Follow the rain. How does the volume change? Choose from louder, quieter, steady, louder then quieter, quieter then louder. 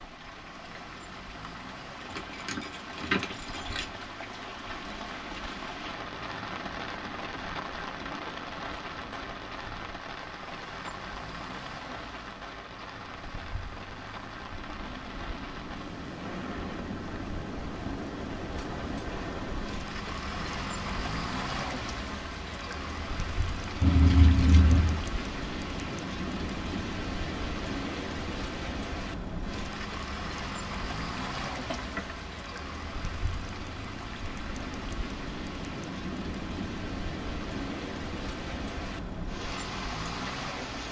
steady.